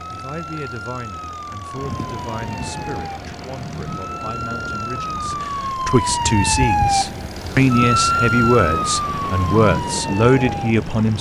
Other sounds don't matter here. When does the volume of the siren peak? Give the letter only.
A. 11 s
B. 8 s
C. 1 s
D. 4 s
B.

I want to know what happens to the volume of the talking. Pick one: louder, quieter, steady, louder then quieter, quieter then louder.
louder.